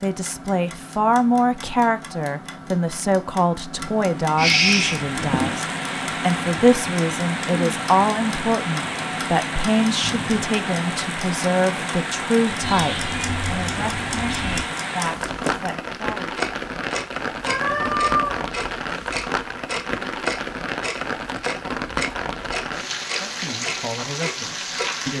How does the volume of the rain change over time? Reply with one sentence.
The loudness of the rain stays about the same.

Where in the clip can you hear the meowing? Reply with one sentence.
The meowing can be heard from 4.3 to 5.5 s, from 12.6 to 14.7 s and from 17.4 to 18.4 s.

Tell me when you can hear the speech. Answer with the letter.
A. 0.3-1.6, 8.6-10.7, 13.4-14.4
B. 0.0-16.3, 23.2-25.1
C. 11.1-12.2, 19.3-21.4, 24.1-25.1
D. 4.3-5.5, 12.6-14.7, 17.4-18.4
B.